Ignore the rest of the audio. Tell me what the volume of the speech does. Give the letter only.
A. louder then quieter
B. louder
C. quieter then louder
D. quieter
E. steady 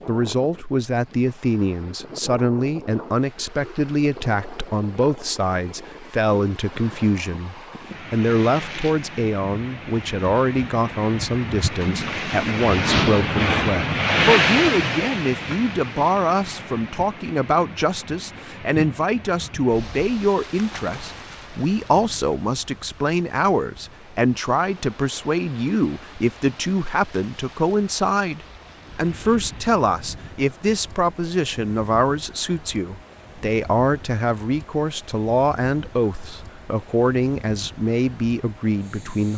E.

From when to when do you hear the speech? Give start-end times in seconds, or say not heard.
0.1-39.3.